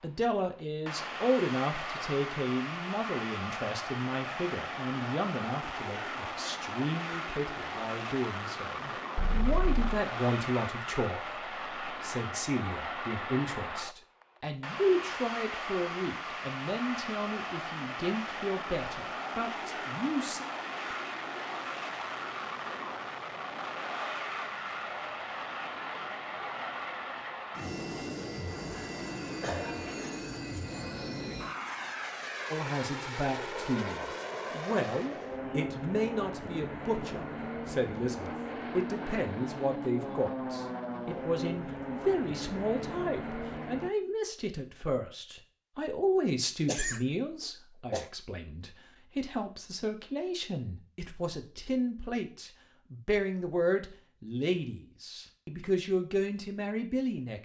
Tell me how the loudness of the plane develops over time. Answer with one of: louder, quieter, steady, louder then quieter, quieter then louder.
steady.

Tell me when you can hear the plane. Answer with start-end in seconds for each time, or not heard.
0.0-43.9.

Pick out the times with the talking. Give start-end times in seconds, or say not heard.
0.0-20.4, 32.5-57.3.